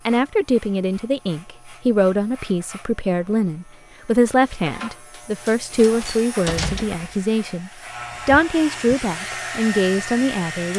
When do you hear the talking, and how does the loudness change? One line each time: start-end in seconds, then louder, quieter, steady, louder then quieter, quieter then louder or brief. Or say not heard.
0.1-10.7 steady.